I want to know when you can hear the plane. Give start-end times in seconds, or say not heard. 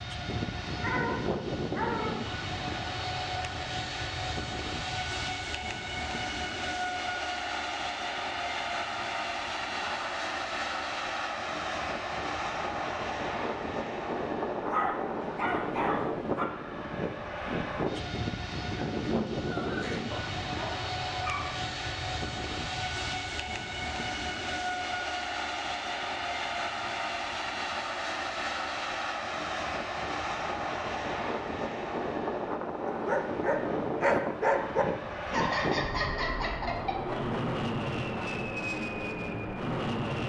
0.0-40.2.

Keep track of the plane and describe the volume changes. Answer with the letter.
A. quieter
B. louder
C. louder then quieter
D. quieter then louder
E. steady
E.